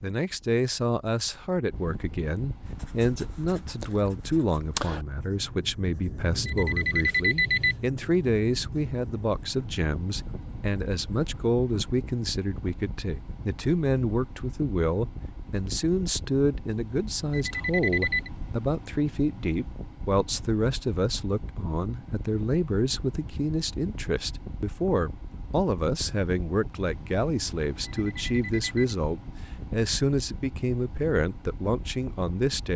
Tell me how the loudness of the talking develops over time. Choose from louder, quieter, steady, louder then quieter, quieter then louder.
steady.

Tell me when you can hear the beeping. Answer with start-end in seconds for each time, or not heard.
6.5-7.8, 17.3-18.3, 27.9-28.9.